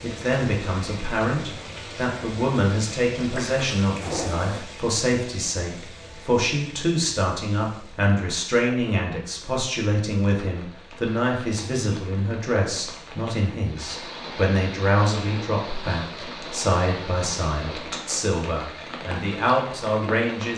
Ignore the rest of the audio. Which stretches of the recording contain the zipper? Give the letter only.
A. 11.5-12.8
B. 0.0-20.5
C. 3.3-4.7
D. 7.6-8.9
C.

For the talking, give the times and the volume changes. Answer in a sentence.
You can hear the talking from 0.0 to 20.5 s, at a steady volume.